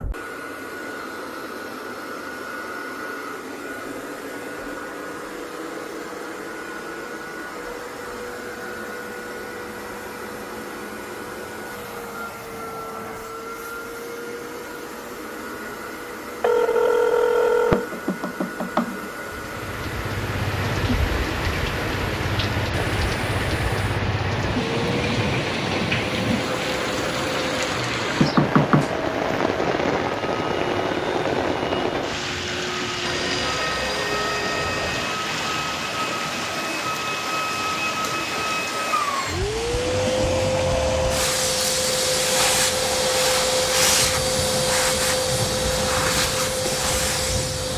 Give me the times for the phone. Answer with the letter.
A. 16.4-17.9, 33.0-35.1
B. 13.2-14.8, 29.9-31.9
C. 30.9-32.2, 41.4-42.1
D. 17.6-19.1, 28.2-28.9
A.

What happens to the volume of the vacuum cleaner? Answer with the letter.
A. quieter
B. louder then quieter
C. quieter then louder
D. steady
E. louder
E.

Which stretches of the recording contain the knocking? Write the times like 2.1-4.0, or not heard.
17.6-19.1, 28.2-28.9.